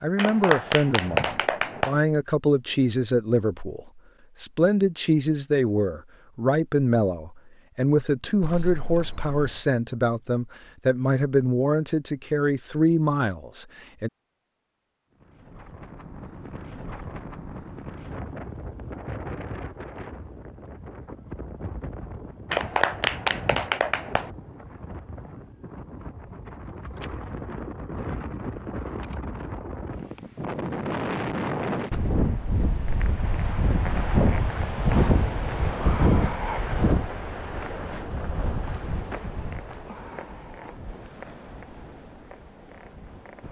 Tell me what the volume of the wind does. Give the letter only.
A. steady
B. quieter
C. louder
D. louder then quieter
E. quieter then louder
D.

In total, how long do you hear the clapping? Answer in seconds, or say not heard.
4 s.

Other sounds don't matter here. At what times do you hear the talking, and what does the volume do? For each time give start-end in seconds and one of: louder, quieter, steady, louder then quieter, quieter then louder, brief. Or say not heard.
0.0-14.1 steady.